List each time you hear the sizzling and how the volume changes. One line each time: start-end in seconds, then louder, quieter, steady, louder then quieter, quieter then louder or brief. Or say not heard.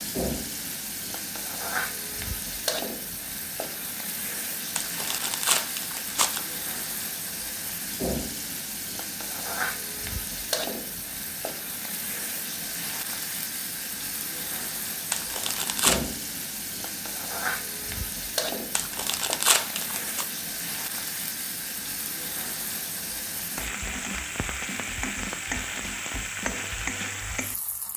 0.0-27.9 steady.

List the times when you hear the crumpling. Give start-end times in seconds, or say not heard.
4.8-6.5, 15.1-16.1, 18.8-20.2.